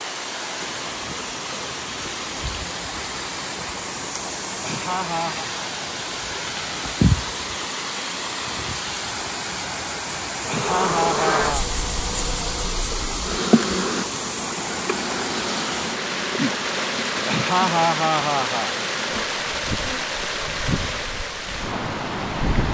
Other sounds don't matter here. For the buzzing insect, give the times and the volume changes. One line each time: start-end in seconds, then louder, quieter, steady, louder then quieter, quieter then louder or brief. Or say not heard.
10.4-22.7 quieter.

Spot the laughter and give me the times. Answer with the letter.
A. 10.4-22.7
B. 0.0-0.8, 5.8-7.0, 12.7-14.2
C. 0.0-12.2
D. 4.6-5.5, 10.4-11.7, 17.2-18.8
D.